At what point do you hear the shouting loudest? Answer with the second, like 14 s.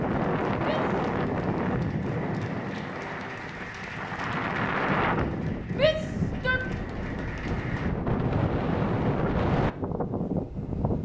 6 s.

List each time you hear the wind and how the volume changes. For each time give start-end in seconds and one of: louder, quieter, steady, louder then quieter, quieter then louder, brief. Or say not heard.
0.0-11.0 quieter then louder.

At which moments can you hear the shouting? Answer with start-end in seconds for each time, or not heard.
0.6-1.0, 5.7-6.6.